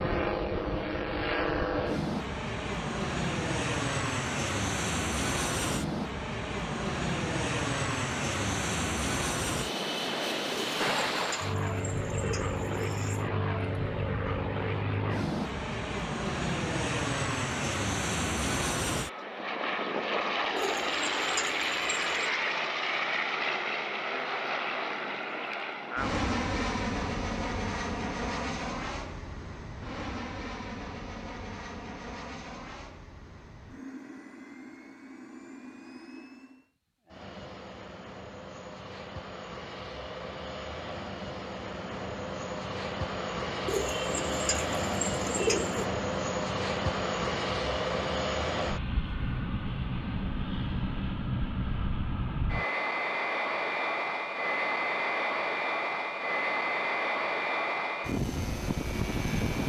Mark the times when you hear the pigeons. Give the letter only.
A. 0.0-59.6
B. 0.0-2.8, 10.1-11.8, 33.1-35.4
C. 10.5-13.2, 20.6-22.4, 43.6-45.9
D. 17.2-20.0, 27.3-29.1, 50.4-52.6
C.